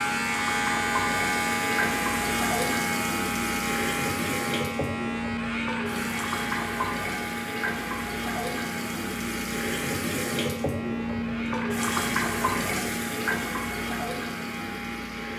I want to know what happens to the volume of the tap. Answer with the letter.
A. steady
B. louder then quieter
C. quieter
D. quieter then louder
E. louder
A.